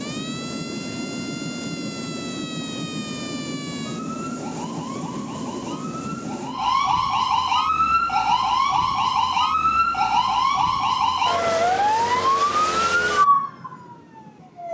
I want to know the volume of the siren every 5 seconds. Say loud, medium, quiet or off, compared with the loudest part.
quiet, loud, loud.